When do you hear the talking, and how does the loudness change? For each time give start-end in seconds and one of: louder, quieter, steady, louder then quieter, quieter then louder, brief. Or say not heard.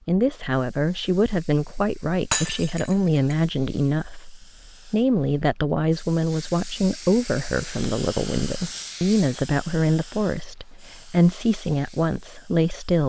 0.1-13.0 steady.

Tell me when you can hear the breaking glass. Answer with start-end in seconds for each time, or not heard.
2.3-3.4.